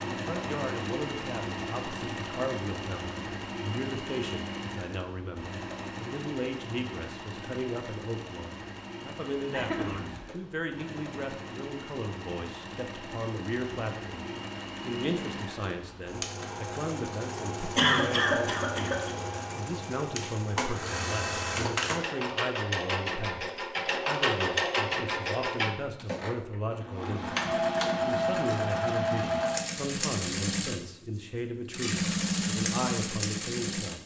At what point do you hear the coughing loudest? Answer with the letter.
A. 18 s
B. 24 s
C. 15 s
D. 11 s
A.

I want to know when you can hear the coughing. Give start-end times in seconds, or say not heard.
9.5-10.3, 17.8-19.1.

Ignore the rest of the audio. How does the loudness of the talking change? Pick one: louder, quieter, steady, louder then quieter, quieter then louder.
steady.